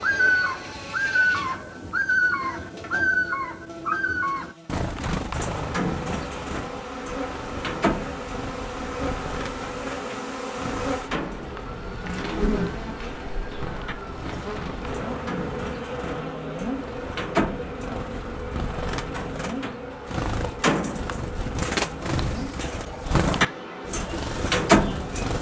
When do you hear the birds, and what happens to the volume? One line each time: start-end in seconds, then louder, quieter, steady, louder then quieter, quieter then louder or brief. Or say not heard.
0.0-25.3 quieter then louder.